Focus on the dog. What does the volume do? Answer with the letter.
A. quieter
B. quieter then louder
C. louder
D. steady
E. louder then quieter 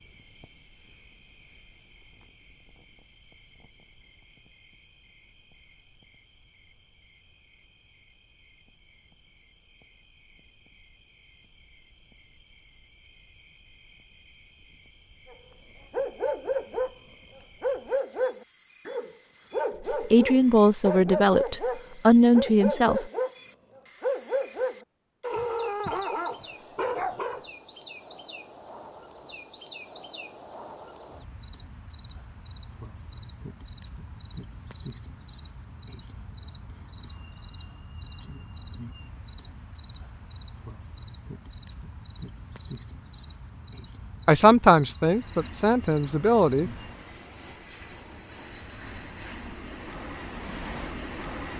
D.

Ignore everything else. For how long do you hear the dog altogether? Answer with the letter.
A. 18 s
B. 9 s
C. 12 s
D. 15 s
C.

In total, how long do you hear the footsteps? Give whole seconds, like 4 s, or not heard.
not heard.